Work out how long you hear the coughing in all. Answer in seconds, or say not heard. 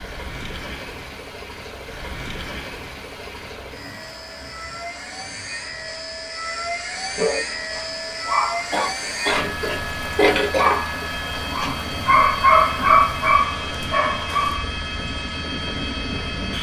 2 s.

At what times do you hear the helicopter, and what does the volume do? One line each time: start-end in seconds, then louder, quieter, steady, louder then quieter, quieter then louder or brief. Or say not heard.
0.0-16.5 louder.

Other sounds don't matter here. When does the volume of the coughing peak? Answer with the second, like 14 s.
10 s.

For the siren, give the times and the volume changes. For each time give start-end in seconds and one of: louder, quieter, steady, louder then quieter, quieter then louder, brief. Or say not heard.
not heard.